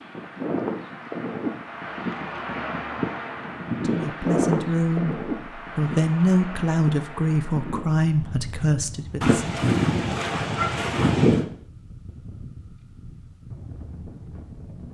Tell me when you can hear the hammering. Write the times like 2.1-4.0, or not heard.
not heard.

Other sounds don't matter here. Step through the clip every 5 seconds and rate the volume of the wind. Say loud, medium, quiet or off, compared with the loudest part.
loud, medium, quiet.